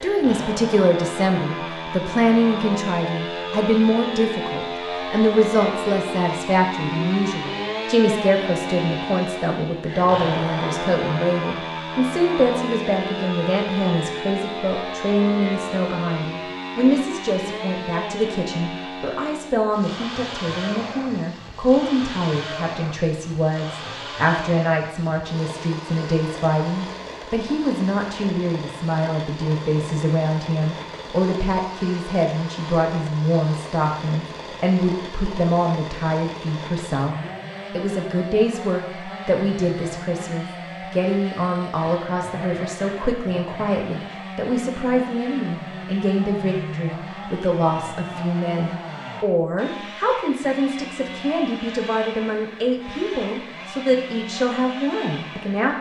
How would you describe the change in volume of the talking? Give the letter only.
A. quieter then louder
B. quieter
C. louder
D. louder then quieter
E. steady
E.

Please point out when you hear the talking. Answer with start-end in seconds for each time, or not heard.
0.0-55.7.